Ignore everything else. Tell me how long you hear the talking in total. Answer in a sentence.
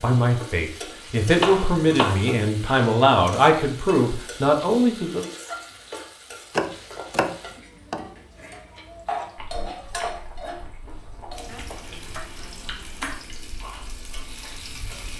You can hear the talking for 5 seconds altogether.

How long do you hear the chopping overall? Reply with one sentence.
You can hear the chopping for 4 seconds altogether.